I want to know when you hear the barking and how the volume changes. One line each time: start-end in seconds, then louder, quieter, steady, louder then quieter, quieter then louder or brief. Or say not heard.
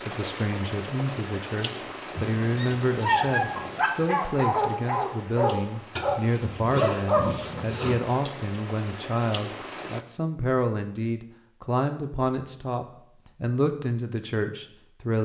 2.1-8.3 steady.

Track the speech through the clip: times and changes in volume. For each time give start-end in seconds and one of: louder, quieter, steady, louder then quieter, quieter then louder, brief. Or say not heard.
0.0-15.2 steady.